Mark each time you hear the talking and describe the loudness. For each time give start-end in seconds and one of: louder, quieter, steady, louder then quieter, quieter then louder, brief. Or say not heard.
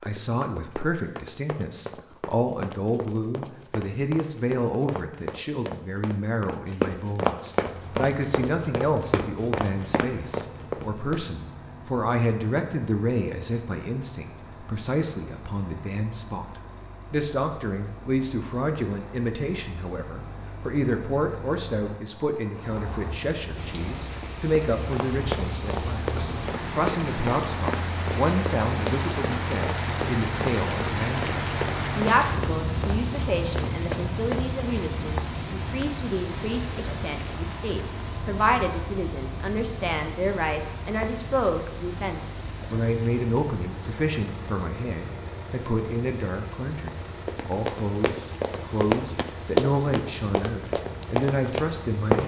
0.0-52.2 steady.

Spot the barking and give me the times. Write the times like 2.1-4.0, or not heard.
not heard.